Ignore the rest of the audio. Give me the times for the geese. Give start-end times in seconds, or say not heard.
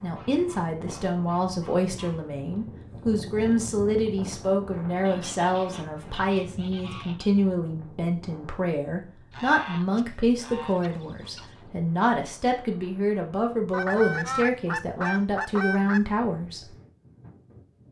0.1-2.3, 4.9-7.3, 9.3-11.6, 13.7-16.0.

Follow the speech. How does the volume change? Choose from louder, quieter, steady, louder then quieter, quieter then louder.
steady.